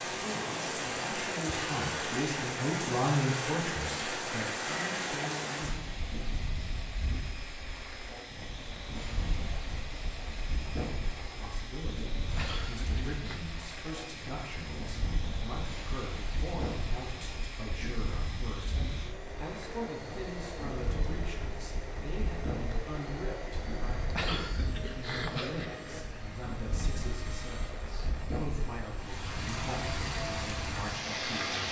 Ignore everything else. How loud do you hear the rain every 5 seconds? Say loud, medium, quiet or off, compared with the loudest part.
loud, medium, medium, medium, medium, medium, loud.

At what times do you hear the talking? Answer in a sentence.
You can hear the talking from 0.1 to 6.0 s and from 11.2 to 31.6 s.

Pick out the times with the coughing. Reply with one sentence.
You can hear the coughing from 12.3 to 13.4 s and from 24.1 to 25.6 s.